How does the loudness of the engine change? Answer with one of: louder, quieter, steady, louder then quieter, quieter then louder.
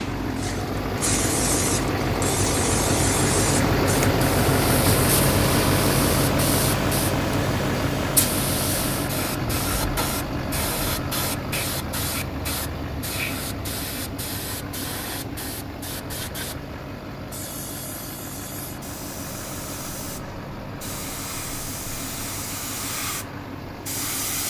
quieter.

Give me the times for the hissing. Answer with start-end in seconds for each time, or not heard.
0.0-24.4.